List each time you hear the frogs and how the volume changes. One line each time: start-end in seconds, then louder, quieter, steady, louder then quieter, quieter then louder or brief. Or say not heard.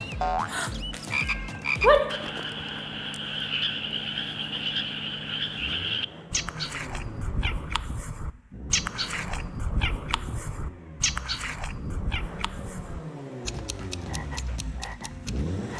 0.0-15.7 quieter.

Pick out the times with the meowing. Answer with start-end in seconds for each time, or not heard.
0.9-2.2.